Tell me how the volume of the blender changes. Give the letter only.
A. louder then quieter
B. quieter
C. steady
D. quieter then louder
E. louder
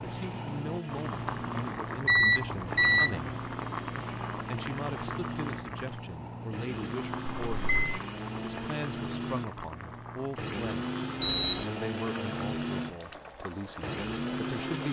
E.